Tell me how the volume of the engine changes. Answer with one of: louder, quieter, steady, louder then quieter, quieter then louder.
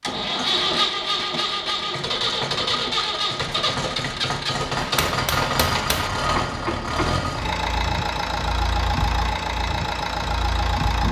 steady.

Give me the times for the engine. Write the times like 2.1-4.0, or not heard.
0.0-11.0.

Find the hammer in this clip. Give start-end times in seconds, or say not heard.
4.8-7.2.